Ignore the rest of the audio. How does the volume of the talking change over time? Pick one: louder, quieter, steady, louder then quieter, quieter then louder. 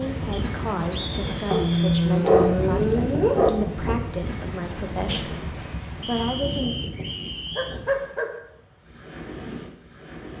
steady.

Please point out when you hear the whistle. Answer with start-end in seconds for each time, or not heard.
0.3-1.9, 6.0-7.8.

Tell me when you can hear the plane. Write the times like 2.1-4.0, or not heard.
not heard.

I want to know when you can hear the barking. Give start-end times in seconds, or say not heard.
1.5-3.5, 7.0-8.3.